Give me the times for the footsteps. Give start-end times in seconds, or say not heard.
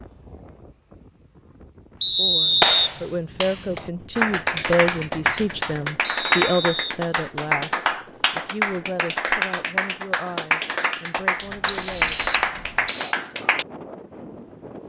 not heard.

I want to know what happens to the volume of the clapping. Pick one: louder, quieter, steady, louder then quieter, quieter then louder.
steady.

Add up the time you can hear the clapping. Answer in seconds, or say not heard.
11 s.